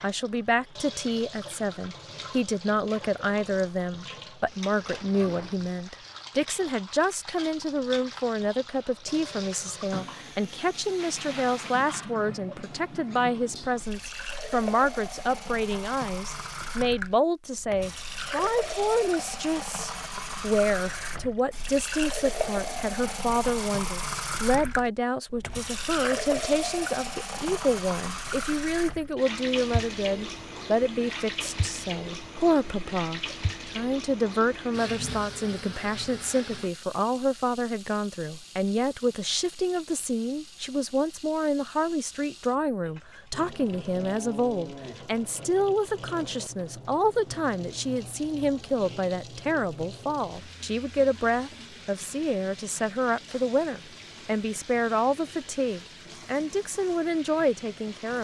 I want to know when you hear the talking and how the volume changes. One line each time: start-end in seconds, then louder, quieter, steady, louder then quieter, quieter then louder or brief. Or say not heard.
0.0-58.1 steady.